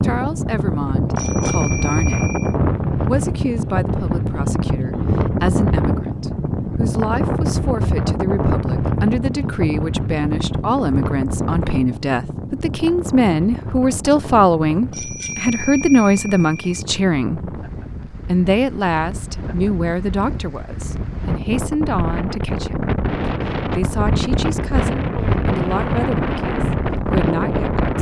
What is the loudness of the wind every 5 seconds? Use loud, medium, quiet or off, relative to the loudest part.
loud, loud, medium, quiet, loud, loud.